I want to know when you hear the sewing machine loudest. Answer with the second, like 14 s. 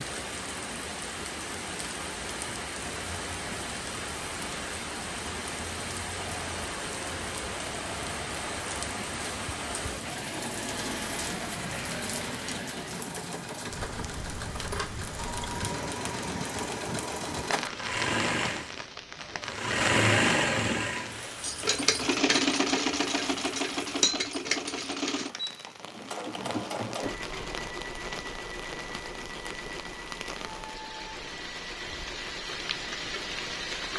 20 s.